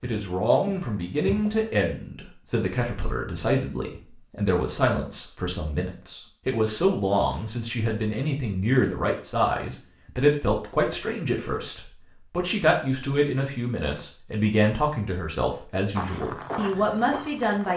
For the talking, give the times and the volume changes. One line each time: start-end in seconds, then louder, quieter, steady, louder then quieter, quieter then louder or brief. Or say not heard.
0.0-17.7 steady.